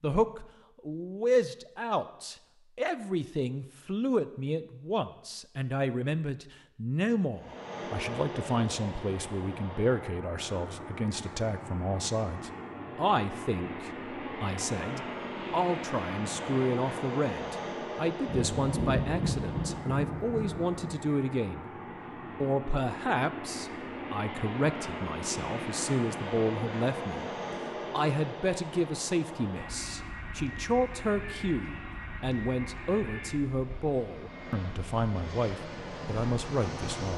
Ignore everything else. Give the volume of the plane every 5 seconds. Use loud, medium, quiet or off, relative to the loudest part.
off, loud, loud, loud, loud, loud, medium, loud.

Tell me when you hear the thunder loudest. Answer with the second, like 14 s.
19 s.